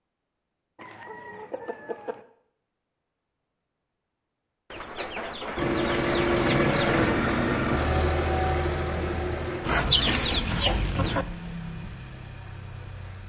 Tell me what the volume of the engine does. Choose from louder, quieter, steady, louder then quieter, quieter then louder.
quieter.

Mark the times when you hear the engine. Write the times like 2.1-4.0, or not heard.
5.5-13.2.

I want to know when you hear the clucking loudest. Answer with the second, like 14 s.
10 s.